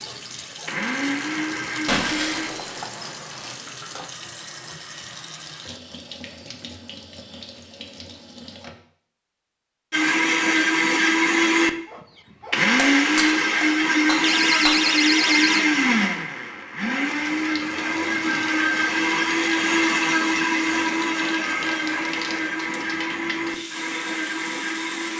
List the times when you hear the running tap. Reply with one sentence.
The running tap can be heard from 0.0 to 8.8 s and from 17.0 to 25.1 s.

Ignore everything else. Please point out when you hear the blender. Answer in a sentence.
The blender can be heard from 0.0 to 2.5 s and from 9.9 to 25.1 s.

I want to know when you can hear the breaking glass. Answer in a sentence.
You can hear the breaking glass from 1.9 to 3.5 s and from 12.8 to 14.8 s.